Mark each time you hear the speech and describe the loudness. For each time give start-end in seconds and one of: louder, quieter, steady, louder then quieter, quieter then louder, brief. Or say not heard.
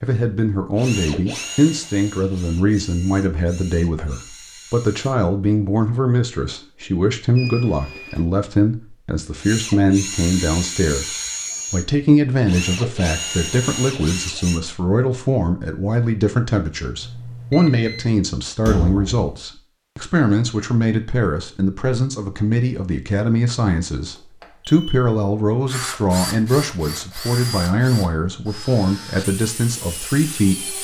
0.0-30.7 steady.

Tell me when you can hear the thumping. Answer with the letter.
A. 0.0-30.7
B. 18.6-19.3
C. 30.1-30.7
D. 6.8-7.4
B.